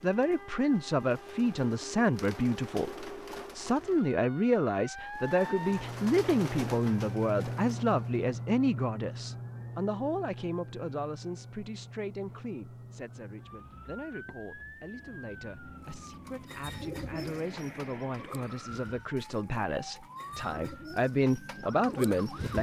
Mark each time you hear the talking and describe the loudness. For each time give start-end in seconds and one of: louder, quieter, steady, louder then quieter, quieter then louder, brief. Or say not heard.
0.0-22.5 quieter then louder.